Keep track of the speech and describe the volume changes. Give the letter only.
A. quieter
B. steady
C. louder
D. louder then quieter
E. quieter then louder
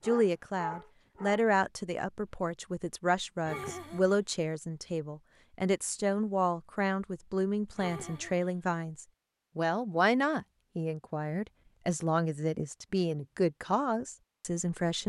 B.